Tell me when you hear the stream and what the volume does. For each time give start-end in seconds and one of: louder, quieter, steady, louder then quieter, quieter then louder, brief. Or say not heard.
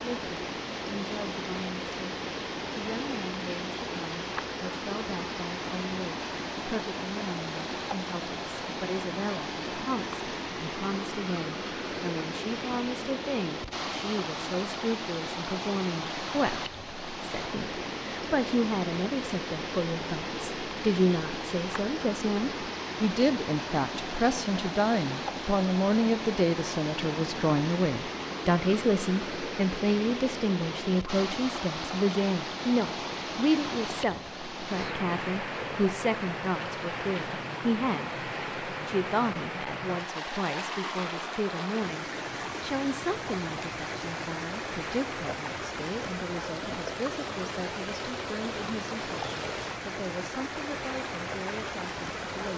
0.0-52.5 steady.